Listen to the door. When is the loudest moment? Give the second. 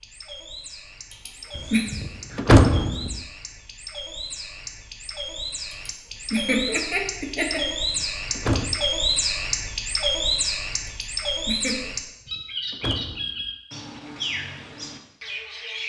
3 s.